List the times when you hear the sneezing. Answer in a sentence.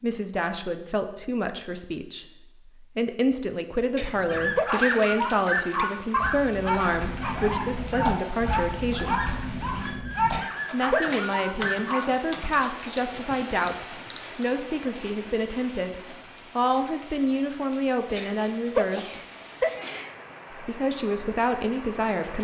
The sneezing can be heard from 4.0 to 5.0 s, from 10.3 to 11.4 s and from 18.1 to 20.1 s.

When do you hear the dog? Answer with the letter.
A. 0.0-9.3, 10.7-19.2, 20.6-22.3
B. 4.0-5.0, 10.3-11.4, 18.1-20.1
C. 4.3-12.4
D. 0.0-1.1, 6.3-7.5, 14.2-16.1
C.